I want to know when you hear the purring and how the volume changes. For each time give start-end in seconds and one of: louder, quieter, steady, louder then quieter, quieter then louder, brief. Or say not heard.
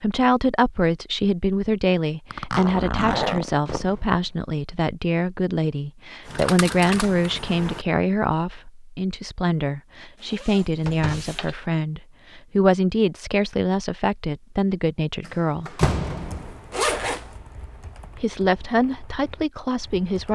not heard.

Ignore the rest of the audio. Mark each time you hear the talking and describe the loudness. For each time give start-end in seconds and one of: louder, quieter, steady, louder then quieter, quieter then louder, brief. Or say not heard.
0.0-15.8 steady
18.1-20.2 brief.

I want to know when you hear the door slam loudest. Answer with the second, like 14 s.
16 s.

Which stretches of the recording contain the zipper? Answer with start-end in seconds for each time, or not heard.
2.3-3.9, 10.2-11.6, 16.7-17.3.